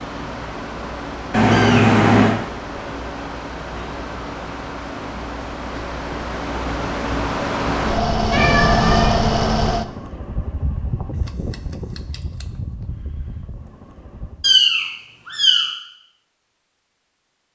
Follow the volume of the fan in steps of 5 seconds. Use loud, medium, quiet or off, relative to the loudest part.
medium, loud, quiet, off.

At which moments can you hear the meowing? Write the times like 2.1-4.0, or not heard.
1.3-2.4, 8.3-9.1, 14.4-15.7.